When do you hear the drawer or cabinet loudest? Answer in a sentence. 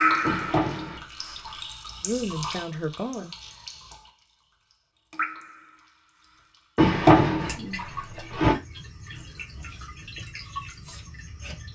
The volume of the drawer or cabinet peaks at 7 seconds.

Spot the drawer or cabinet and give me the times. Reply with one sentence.
The drawer or cabinet can be heard from 0.2 to 1.6 s and from 6.8 to 8.6 s.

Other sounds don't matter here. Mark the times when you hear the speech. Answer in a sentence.
The speech can be heard from 2.0 to 3.7 s.